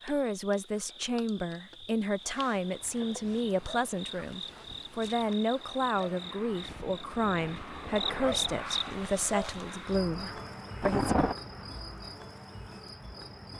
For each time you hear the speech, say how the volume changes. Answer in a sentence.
You can hear the speech from 0.0 to 11.2 s, at a steady volume.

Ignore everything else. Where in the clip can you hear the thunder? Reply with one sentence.
The thunder can be heard from 10.8 to 11.3 s.